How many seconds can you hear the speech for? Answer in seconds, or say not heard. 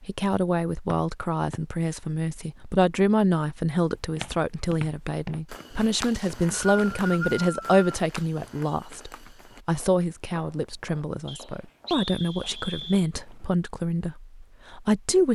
15 s.